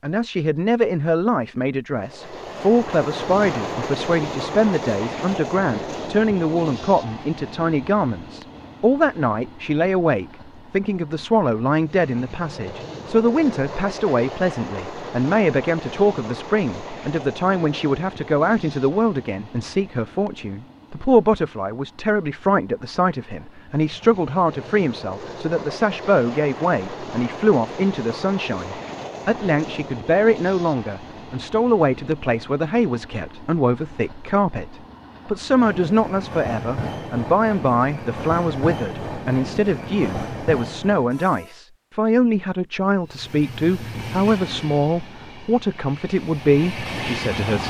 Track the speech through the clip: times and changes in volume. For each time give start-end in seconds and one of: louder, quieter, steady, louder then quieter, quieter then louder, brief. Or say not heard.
0.0-47.6 steady.